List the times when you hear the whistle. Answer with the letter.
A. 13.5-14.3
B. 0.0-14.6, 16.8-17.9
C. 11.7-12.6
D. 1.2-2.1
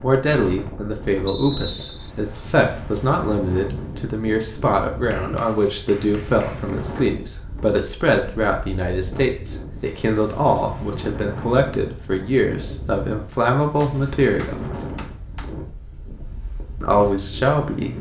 D.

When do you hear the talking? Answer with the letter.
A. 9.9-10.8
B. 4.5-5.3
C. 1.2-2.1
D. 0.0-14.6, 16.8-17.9
D.